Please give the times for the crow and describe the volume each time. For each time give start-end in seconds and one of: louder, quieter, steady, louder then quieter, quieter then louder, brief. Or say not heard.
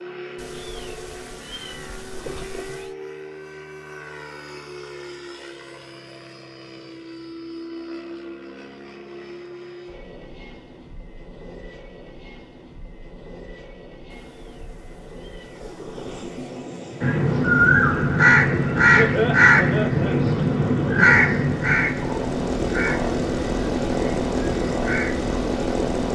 17.0-25.4 quieter.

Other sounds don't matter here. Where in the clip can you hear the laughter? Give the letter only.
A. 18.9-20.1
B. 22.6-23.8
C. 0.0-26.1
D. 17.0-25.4
A.